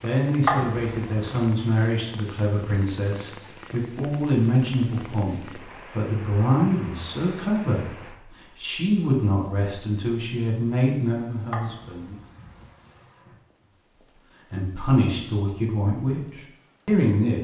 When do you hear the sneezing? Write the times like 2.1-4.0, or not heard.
0.5-1.4, 11.5-13.3.